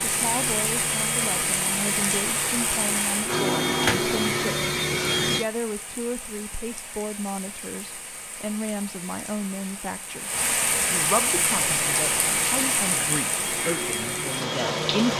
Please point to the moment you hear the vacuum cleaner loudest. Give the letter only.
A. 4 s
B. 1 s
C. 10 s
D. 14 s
A.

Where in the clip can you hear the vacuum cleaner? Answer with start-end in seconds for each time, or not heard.
0.0-5.5, 11.2-15.1.